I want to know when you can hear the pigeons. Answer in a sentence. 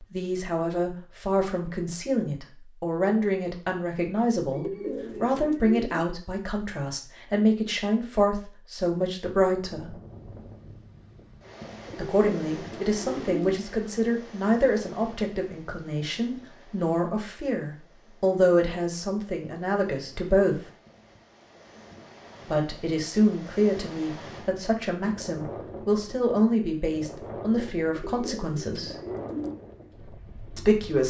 You can hear the pigeons from 4.5 to 6.0 s, from 11.8 to 13.5 s and from 27.9 to 29.6 s.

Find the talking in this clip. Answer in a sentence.
You can hear the talking from 0.0 to 10.0 s, from 11.9 to 20.6 s, from 22.5 to 28.9 s and from 30.6 to 31.0 s.